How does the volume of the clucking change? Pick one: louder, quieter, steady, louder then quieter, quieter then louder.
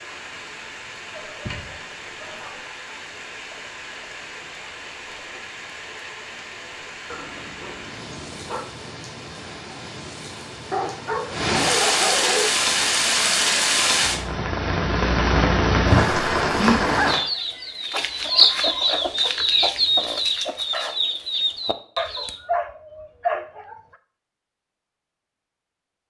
louder then quieter.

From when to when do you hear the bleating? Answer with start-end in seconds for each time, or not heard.
not heard.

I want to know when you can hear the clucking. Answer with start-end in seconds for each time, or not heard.
17.0-22.4.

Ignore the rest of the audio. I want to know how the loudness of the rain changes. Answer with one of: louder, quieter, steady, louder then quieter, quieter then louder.
louder.